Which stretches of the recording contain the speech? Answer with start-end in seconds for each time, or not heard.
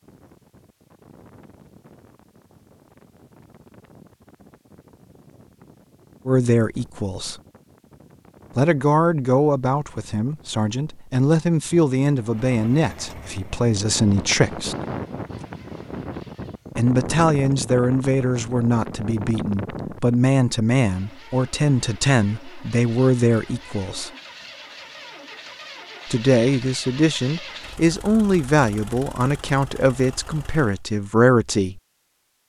6.2-7.3, 8.6-14.8, 16.8-24.1, 26.1-31.8.